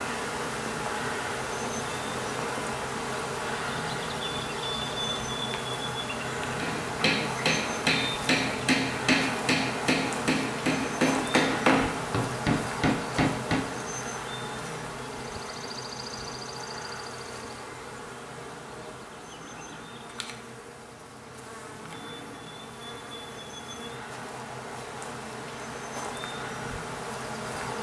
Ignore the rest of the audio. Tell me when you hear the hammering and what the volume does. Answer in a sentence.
You can hear the hammering from 6.5 to 13.7 s, at a steady volume.